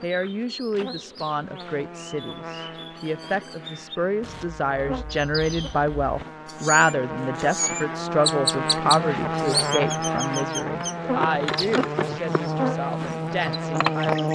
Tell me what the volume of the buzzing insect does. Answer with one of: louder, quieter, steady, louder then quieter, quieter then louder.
louder.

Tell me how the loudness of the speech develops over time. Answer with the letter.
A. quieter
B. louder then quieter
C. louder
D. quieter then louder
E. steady
B.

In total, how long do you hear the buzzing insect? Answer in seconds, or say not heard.
14 s.